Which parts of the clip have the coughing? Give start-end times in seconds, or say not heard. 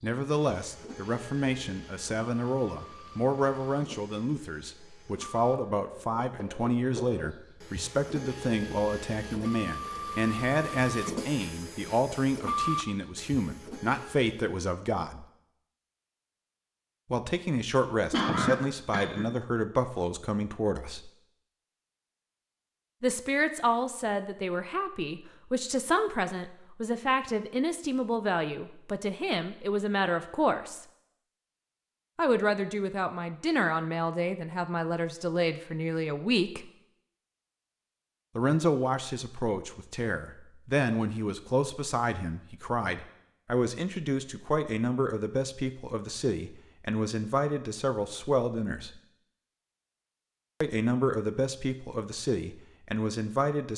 18.1-19.4.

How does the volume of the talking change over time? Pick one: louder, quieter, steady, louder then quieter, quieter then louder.
steady.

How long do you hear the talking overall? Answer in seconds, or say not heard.
45 s.